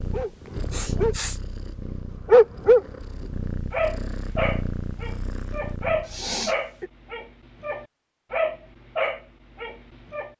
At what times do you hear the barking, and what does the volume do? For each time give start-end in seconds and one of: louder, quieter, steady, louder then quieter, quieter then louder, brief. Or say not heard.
0.0-1.1 brief
2.2-10.3 quieter.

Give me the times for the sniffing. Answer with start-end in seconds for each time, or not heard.
0.7-1.4, 6.0-6.9.